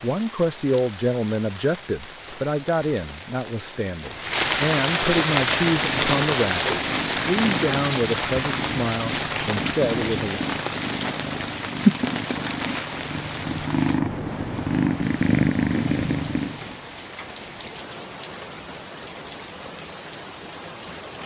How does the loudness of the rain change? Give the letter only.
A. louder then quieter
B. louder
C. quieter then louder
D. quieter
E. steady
A.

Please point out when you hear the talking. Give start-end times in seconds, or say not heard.
0.0-10.4.